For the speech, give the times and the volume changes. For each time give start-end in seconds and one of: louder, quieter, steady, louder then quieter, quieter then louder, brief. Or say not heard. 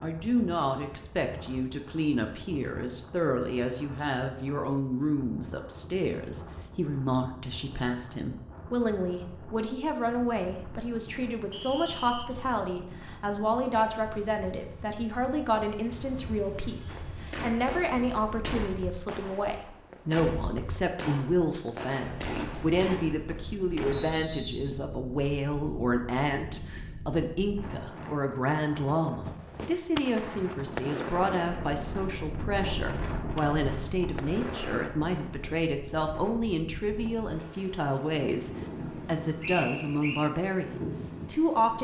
0.0-41.8 steady.